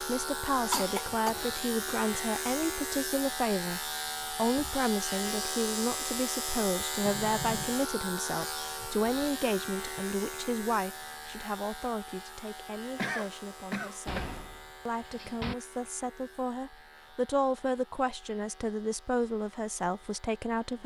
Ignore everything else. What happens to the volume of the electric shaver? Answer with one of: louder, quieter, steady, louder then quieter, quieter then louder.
quieter.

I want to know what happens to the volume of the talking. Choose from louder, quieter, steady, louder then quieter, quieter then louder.
quieter then louder.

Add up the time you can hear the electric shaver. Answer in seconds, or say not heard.
21 s.